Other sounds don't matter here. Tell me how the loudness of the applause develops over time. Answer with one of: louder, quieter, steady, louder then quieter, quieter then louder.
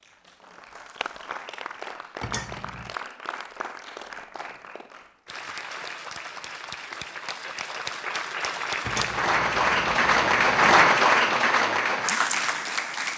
louder.